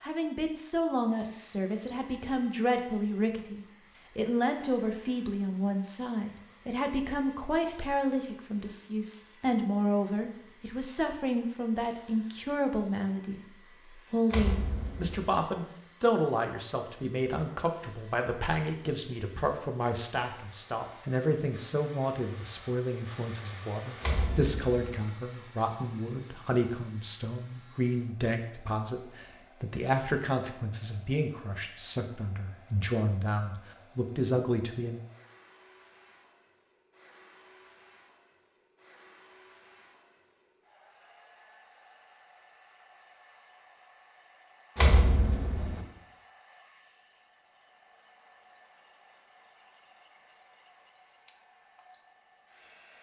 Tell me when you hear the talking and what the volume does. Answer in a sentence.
The talking can be heard from 0.0 to 35.0 s, at a steady volume.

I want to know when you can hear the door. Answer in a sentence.
The door can be heard from 14.3 to 15.3 s, from 24.0 to 24.8 s and from 44.8 to 45.8 s.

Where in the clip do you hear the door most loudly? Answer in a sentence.
The loudest moment of the door is at 45 seconds.